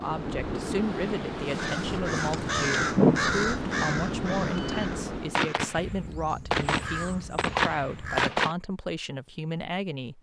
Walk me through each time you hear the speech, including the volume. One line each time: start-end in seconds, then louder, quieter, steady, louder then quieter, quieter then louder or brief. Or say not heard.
0.0-10.1 steady.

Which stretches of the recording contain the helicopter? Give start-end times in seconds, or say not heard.
not heard.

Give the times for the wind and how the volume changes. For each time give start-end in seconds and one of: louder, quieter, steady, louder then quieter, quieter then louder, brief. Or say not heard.
0.0-5.5 steady.